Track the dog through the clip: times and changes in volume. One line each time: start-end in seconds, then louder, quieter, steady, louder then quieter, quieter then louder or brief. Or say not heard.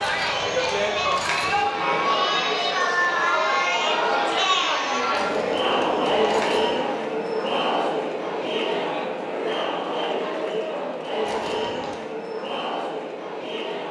not heard.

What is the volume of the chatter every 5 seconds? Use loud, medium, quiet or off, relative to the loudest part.
loud, loud, medium.